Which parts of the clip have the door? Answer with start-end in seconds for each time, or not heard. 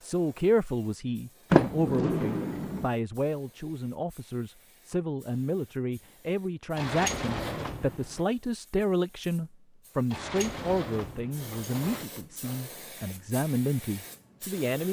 1.5-2.9, 6.8-8.0, 10.1-12.1.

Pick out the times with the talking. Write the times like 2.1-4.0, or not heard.
0.0-14.8.